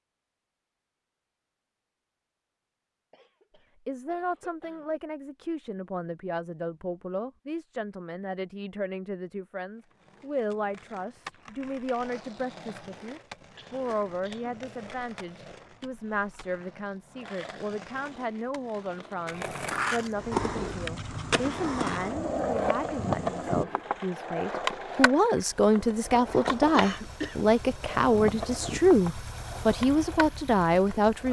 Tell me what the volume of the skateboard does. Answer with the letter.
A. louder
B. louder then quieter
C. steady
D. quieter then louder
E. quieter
B.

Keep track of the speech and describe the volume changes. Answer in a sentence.
The loudness of the speech goes up.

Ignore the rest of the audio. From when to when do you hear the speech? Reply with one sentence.
The speech can be heard from 3.9 to 31.2 s.